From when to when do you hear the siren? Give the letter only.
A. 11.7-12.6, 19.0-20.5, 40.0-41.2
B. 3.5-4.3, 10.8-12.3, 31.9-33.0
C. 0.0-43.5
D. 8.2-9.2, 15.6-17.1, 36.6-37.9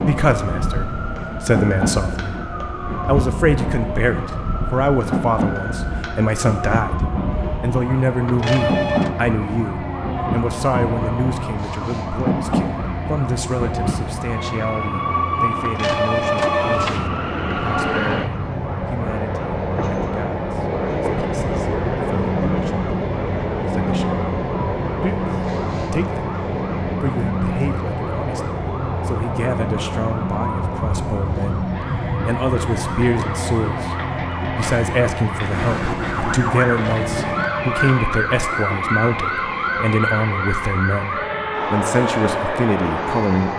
C.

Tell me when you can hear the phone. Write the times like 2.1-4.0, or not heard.
8.2-9.2, 15.6-17.1, 36.6-37.9.